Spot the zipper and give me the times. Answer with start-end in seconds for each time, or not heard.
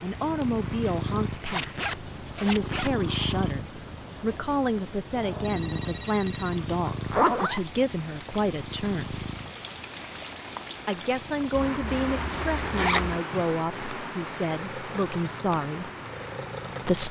1.4-2.9, 7.0-7.7, 11.6-13.2.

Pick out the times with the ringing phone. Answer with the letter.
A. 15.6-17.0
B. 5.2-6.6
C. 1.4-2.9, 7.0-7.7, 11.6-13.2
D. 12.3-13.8
B.